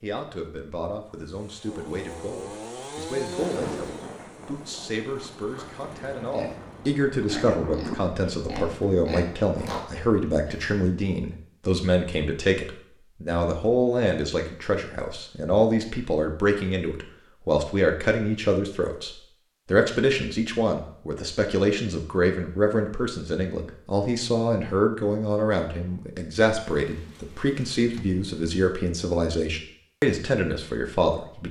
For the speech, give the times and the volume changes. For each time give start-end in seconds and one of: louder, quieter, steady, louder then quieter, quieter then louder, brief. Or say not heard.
0.0-31.4 louder.